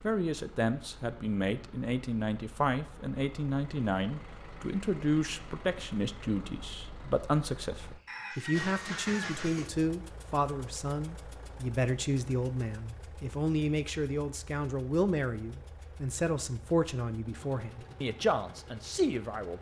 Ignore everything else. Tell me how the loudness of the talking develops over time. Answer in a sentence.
The volume of the talking stays about the same.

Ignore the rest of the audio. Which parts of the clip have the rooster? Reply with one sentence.
You can hear the rooster from 8.1 to 9.3 s.